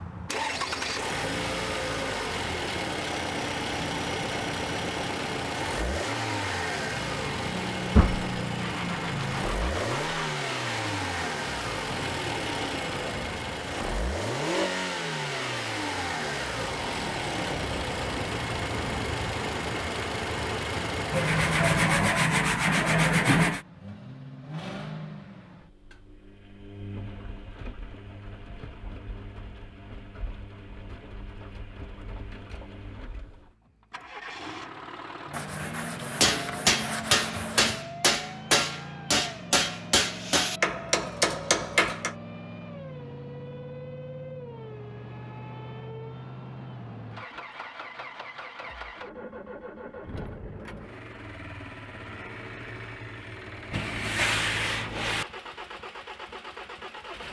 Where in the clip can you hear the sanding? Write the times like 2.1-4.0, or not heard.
8.0-10.2, 21.1-23.6, 35.3-37.9, 53.7-55.2.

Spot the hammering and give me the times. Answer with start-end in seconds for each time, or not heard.
36.2-42.1.